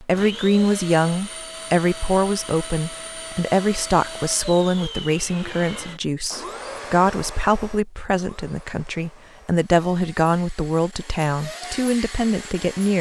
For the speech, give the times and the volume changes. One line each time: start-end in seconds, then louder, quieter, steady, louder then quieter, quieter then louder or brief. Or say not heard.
0.0-12.9 steady.